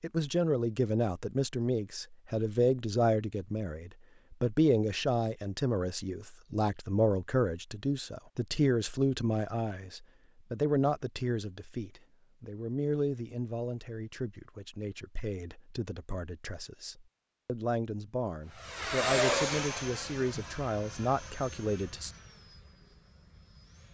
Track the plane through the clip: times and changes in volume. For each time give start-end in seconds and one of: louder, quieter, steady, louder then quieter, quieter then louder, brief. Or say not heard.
18.6-23.8 quieter.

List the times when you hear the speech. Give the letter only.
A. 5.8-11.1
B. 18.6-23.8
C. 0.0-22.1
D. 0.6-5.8
C.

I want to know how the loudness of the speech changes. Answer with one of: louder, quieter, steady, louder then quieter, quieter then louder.
quieter then louder.